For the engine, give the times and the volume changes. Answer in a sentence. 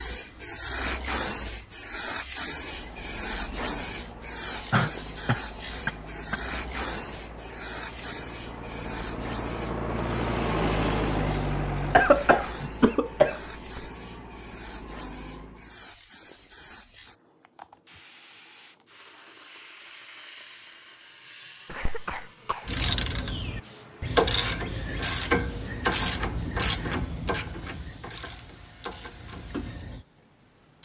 The engine can be heard from 2.4 to 15.9 s, getting louder then quieter.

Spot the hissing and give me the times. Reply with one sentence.
The hissing can be heard from 0.0 to 30.8 s.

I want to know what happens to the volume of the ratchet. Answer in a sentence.
The volume of the ratchet goes down.